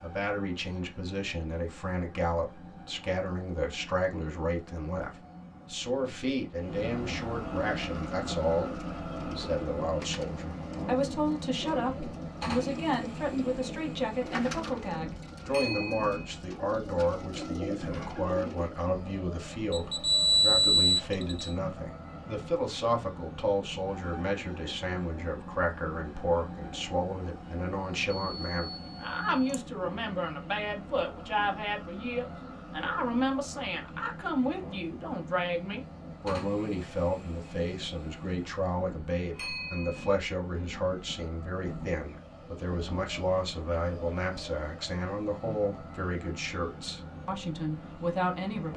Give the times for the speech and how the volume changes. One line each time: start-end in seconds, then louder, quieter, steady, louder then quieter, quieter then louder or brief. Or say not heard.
0.0-48.7 steady.